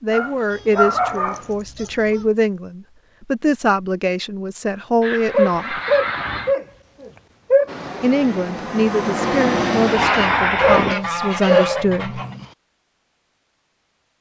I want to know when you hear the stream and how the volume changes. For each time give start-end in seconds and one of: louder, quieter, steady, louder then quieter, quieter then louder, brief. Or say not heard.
not heard.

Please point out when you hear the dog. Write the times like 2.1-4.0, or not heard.
0.1-1.4, 5.3-7.7, 10.6-12.4.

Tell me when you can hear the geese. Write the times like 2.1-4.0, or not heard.
0.5-2.3, 5.0-6.5, 9.9-12.3.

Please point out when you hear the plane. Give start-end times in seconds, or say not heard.
7.7-10.9.